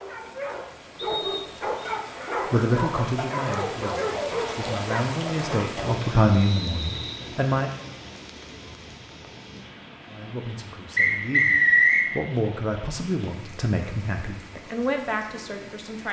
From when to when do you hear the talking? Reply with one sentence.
You can hear the talking from 2.5 to 7.7 s and from 10.1 to 16.0 s.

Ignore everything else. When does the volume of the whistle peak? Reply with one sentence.
The loudest moment of the whistle is at 12 seconds.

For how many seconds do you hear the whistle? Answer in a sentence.
The whistle can be heard for 3 seconds in total.